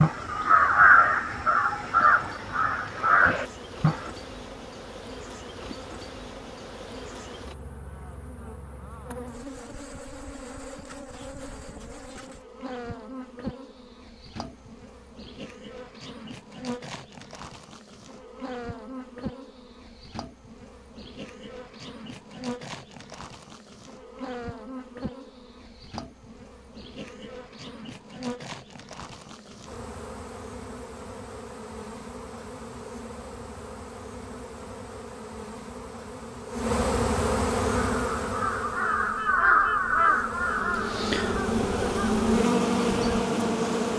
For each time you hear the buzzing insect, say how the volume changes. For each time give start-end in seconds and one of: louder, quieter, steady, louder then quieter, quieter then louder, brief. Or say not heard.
0.0-43.9 louder.